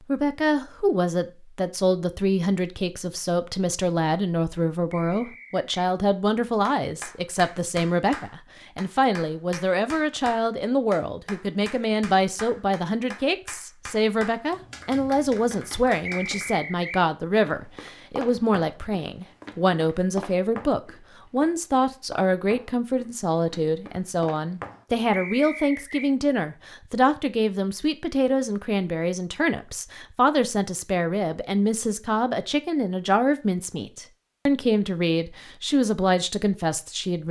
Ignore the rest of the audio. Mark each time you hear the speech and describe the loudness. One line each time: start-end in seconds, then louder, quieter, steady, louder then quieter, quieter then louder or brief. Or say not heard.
0.0-37.2 steady.